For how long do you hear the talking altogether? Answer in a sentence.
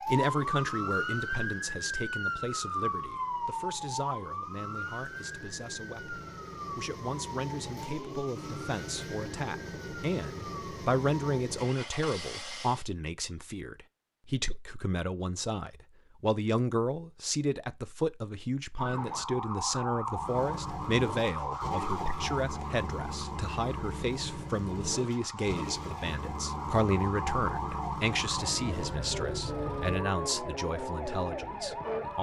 The talking can be heard for 32 seconds in total.